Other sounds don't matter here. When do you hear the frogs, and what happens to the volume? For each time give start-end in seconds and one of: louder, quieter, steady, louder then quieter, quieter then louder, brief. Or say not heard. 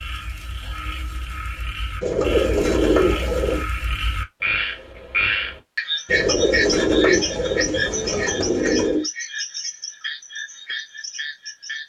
0.0-11.8 louder then quieter.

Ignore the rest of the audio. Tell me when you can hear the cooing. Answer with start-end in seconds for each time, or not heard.
2.0-3.6, 6.0-9.1.